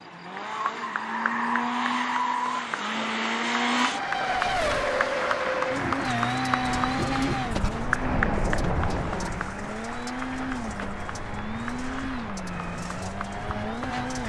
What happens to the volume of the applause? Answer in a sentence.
The volume of the applause goes up, then down.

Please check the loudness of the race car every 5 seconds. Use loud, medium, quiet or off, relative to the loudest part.
loud, loud, medium.